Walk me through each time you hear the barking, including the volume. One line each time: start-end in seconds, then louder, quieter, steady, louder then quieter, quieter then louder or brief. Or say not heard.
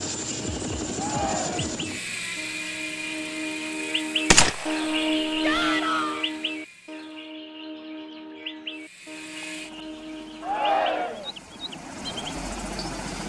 not heard.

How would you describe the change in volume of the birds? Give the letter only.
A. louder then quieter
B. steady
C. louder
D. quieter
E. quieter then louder
A.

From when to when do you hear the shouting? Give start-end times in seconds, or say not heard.
0.9-1.9, 5.4-6.2, 10.4-11.3.